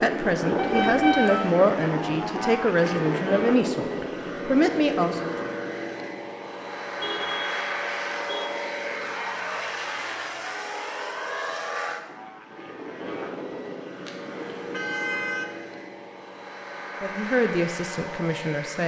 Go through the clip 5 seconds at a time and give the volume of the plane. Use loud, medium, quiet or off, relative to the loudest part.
loud, loud, medium, medium.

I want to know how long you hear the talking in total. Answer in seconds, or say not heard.
7 s.